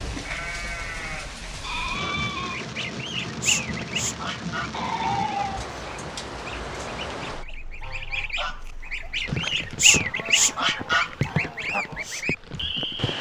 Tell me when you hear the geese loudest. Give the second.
10 s.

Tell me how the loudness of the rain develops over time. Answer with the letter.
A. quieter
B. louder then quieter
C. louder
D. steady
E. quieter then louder
D.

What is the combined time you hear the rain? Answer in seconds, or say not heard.
13 s.